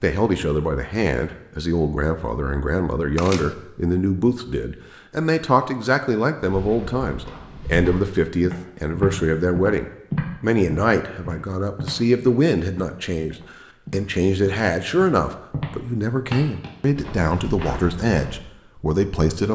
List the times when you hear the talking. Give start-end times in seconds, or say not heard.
0.0-19.5.